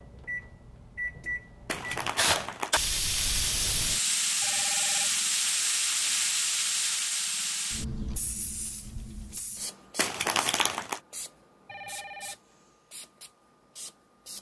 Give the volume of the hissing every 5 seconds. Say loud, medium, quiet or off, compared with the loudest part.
loud, loud, quiet.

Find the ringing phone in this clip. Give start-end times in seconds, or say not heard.
4.4-5.2, 11.7-12.3.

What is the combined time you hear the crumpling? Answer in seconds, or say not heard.
2 s.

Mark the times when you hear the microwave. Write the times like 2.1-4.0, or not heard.
0.0-2.5.